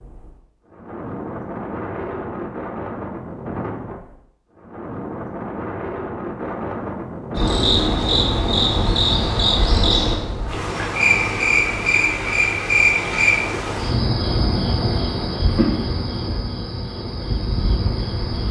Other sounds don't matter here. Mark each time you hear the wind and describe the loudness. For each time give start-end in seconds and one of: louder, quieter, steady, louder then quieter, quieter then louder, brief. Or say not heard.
0.0-10.4 steady.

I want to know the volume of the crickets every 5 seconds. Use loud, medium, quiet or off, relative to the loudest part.
off, loud, loud, medium.